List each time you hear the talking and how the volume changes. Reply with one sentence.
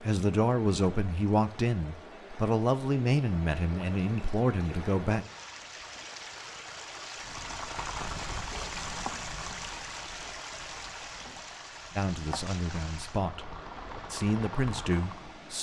The talking can be heard from 0.0 to 5.2 s, at a steady volume; briefly from 11.9 to 13.5 s; and briefly from 14.1 to 15.5 s.